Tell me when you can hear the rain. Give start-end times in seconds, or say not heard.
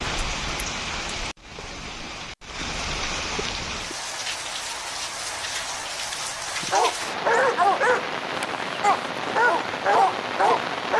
0.0-10.9.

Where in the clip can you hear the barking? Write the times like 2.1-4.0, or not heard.
6.7-10.9.